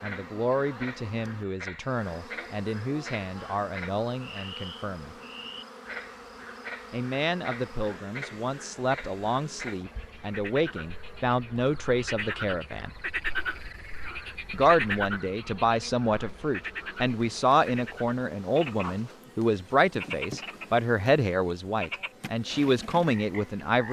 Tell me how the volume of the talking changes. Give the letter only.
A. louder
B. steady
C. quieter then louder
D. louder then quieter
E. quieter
A.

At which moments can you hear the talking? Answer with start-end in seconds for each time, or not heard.
0.0-5.2, 6.9-12.9, 14.5-23.8.